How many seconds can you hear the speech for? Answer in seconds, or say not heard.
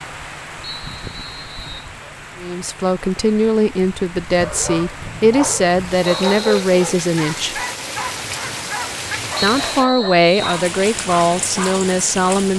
8 s.